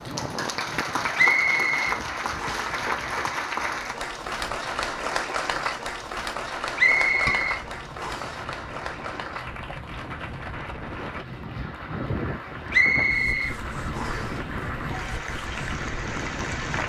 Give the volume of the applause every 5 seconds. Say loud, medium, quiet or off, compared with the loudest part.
loud, loud, medium, loud.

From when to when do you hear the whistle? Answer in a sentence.
You can hear the whistle from 1.1 to 2.8 s, from 6.8 to 8.3 s and from 12.7 to 14.3 s.